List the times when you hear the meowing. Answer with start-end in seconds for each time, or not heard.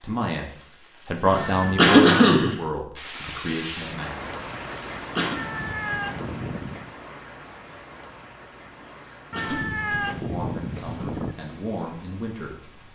1.4-1.9, 5.3-7.0, 9.3-11.3.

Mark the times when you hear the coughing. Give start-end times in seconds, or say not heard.
1.2-2.5, 4.6-5.3, 8.8-9.7.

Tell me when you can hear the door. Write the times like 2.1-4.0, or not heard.
not heard.